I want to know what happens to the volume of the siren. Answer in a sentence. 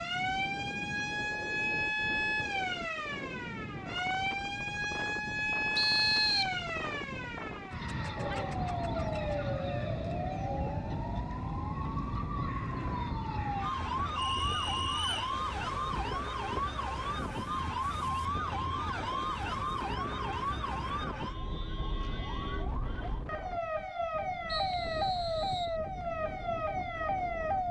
The volume of the siren stays about the same.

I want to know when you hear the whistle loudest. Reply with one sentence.
The loudest moment of the whistle is at 6 seconds.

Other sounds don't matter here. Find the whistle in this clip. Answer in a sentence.
You can hear the whistle from 5.8 to 6.5 s, from 14.2 to 15.3 s and from 24.4 to 25.8 s.